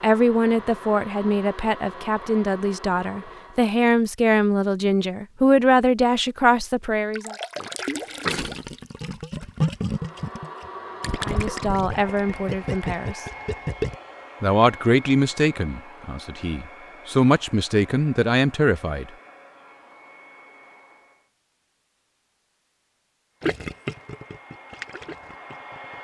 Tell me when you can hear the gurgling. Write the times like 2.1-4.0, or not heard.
7.1-13.9, 23.4-25.9.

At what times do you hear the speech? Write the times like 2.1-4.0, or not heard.
0.0-7.3, 11.2-13.2, 14.4-19.1.